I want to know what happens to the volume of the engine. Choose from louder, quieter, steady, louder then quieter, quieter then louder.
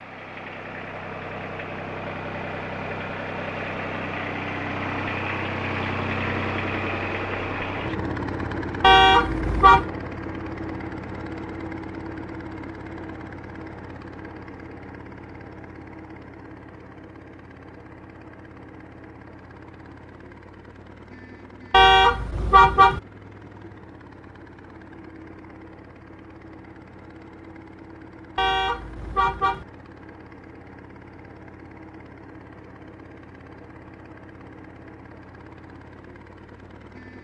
quieter.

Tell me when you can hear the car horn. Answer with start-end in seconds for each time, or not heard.
8.8-9.8, 21.7-23.0, 28.4-29.6.